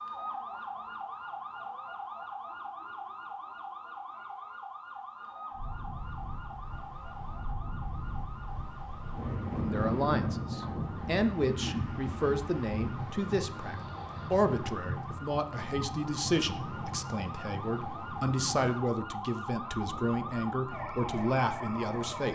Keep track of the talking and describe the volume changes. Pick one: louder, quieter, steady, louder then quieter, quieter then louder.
steady.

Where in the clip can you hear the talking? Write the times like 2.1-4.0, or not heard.
9.6-22.2.